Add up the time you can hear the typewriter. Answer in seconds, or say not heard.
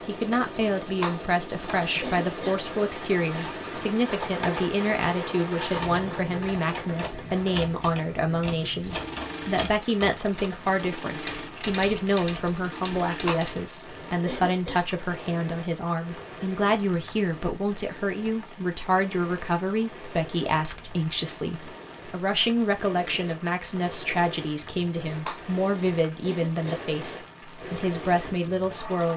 10 s.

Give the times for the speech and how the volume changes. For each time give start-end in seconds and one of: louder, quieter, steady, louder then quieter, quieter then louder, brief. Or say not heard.
0.1-29.1 steady.